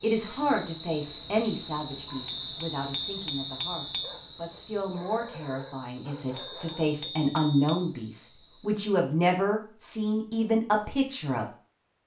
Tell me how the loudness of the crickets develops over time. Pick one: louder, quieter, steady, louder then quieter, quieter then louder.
quieter.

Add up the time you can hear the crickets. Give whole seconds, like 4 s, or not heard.
9 s.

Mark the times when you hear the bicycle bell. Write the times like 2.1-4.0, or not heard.
2.2-4.2, 6.3-7.8.